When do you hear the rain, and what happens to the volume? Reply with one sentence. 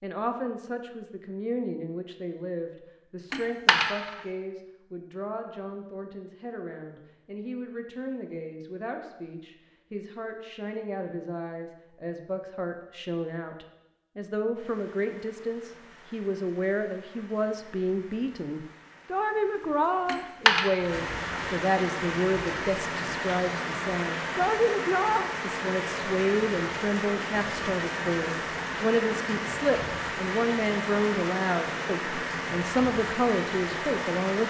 You can hear the rain from 14.6 to 34.4 s, getting louder.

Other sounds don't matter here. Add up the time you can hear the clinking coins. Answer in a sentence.
You can hear the clinking coins for 2 seconds altogether.